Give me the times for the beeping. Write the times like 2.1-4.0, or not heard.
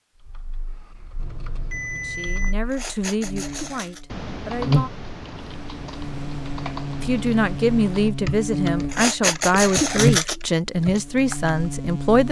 1.1-2.5.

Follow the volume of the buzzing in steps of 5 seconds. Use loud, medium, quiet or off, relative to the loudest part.
loud, medium, loud.